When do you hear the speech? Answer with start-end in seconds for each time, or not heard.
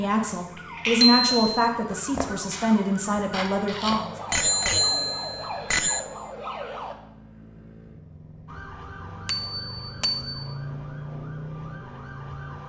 0.0-4.2.